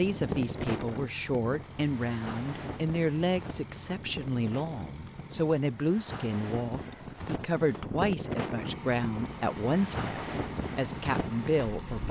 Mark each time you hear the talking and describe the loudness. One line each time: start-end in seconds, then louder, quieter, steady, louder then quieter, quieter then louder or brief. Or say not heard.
0.0-12.0 steady.